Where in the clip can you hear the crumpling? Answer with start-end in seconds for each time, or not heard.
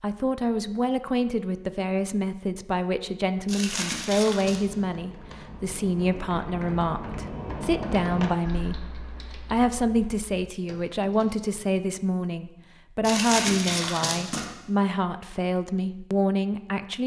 3.5-4.6, 13.0-14.4.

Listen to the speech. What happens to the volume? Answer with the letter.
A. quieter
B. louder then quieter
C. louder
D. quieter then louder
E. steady
E.